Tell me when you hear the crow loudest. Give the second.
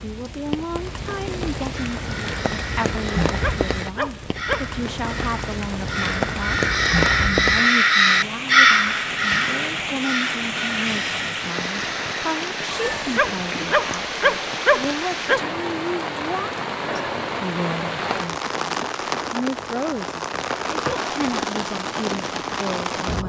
9 s.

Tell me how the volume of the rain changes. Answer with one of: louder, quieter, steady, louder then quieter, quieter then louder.
steady.